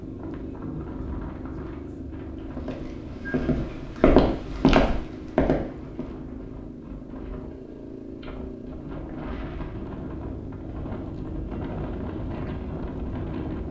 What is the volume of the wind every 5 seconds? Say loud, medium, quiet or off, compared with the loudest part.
medium, medium, loud.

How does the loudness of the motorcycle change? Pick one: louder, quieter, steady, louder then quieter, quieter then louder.
steady.